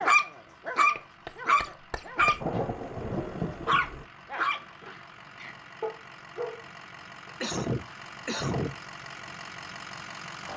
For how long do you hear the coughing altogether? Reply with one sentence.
The coughing can be heard for 3 seconds in total.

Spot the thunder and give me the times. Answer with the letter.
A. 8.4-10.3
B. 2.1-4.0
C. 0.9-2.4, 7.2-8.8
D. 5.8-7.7
B.